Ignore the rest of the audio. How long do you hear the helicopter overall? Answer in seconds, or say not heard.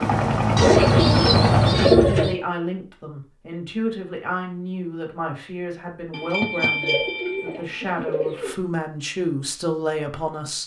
2 s.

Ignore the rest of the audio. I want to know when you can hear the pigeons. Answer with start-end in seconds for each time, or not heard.
0.6-2.4, 6.1-8.6.